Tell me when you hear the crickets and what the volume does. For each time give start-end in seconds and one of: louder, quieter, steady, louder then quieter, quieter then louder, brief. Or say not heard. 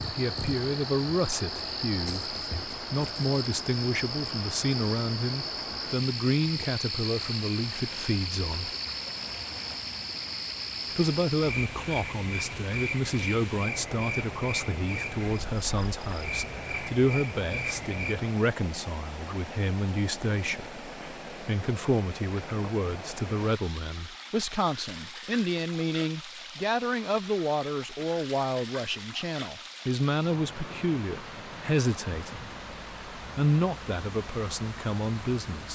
0.0-18.3 steady.